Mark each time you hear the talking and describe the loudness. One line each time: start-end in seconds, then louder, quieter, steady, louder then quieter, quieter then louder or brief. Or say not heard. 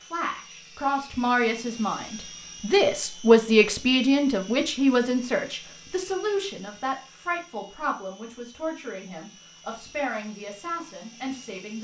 0.0-11.7 louder then quieter.